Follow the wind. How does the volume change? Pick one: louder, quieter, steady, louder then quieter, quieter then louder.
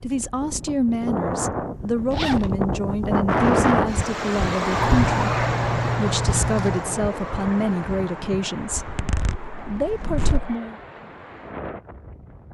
louder then quieter.